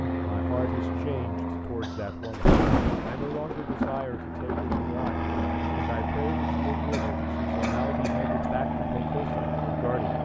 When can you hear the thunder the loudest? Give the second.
3 s.